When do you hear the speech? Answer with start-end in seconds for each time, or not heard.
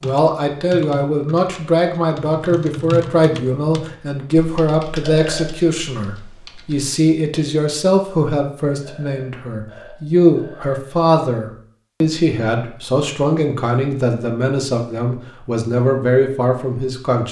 0.0-17.2.